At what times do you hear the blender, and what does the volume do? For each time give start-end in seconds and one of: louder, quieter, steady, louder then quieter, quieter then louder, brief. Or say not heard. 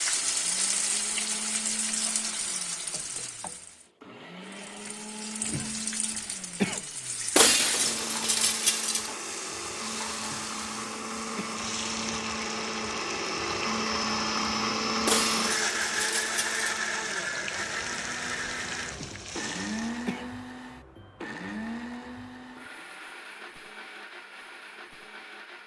0.0-25.6 louder then quieter.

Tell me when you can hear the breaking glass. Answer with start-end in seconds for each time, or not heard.
7.3-9.1, 15.1-16.6.